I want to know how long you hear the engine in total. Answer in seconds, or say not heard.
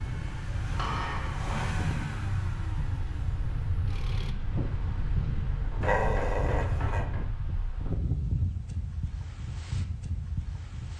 4 s.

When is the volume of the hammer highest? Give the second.
1 s.